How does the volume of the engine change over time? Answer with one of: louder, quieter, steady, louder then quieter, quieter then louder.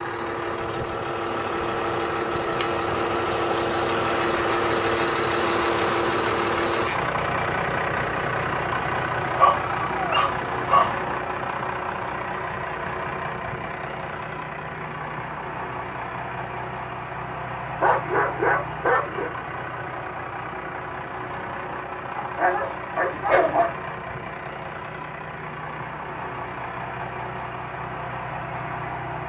quieter.